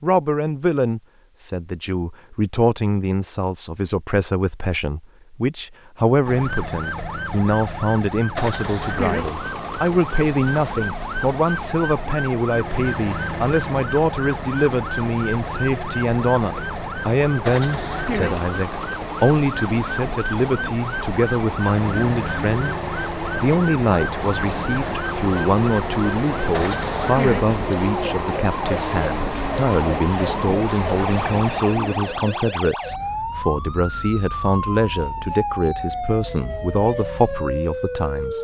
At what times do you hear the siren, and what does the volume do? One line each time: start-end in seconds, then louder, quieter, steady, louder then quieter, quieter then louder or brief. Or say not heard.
6.2-38.3 steady.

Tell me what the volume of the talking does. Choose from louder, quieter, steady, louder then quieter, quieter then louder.
steady.